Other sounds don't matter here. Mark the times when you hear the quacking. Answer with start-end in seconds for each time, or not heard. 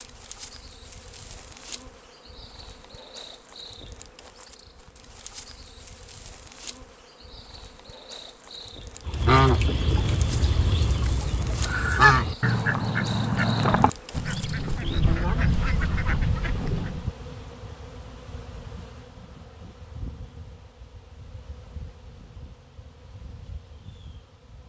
9.1-17.1.